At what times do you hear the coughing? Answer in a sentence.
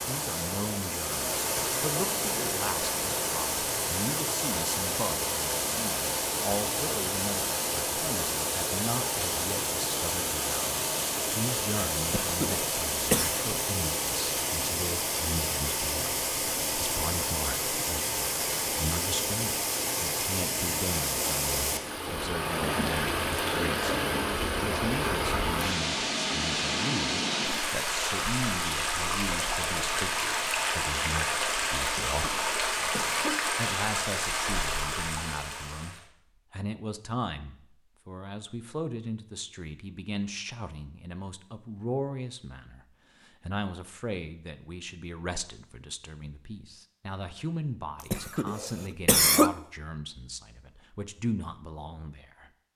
You can hear the coughing from 12.0 to 13.3 s, from 31.9 to 33.4 s and from 48.1 to 49.5 s.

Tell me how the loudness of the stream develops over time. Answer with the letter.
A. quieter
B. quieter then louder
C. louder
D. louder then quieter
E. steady
E.